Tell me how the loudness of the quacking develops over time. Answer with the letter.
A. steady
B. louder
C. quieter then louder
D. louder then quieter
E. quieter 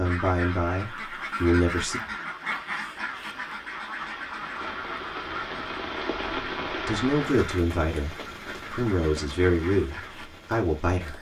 E.